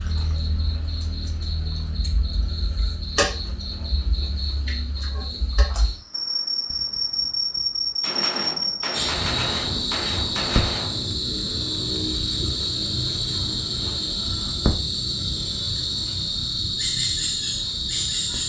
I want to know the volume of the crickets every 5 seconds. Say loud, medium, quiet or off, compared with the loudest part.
medium, loud, loud, loud.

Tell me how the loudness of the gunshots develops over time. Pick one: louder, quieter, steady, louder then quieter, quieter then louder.
louder.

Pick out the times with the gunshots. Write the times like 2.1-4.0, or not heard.
6.7-11.2.